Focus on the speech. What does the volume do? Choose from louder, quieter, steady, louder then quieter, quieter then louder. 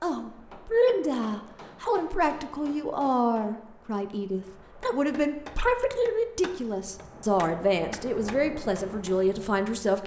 steady.